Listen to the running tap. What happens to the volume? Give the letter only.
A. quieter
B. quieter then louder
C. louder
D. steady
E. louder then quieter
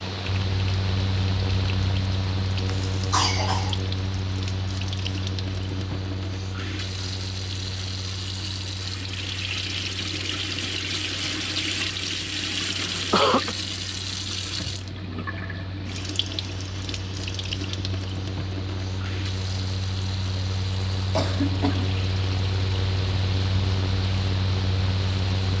E.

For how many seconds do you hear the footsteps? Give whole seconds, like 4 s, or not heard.
not heard.